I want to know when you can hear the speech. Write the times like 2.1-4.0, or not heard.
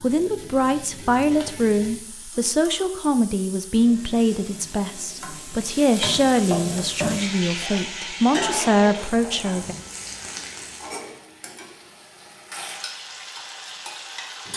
0.0-9.8.